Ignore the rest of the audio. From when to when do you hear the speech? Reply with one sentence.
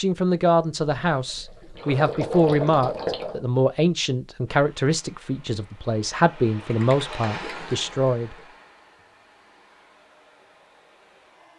The speech can be heard from 0.0 to 8.3 s.